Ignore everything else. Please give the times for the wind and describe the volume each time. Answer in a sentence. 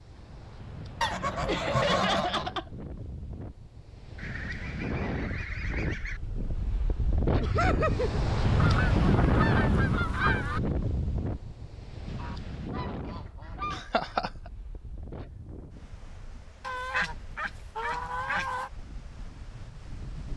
The wind can be heard from 0.0 to 20.3 s, getting louder then quieter.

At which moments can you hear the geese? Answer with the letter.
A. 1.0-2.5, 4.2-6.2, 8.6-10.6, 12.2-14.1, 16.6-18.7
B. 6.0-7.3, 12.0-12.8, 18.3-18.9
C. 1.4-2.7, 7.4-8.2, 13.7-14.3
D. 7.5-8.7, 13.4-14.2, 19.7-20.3
A.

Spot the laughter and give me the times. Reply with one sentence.
The laughter can be heard from 1.4 to 2.7 s, from 7.4 to 8.2 s and from 13.7 to 14.3 s.